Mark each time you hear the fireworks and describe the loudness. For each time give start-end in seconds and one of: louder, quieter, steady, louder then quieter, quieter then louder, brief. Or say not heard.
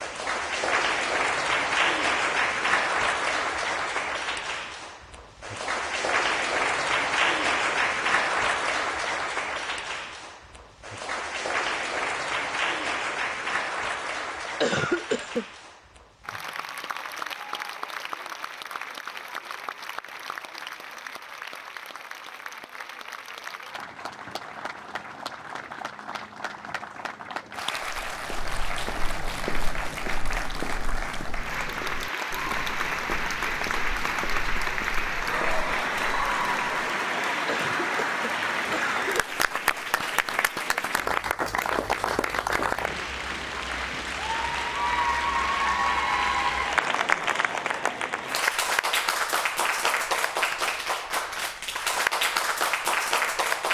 not heard.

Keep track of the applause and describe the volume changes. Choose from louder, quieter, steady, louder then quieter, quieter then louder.
quieter then louder.